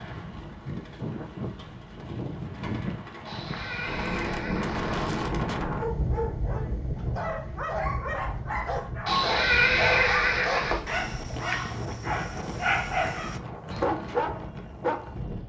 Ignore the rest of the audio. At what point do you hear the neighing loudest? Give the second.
10 s.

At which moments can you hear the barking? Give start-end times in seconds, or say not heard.
5.8-15.1.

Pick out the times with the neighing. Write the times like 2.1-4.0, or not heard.
3.2-5.2, 9.1-10.8.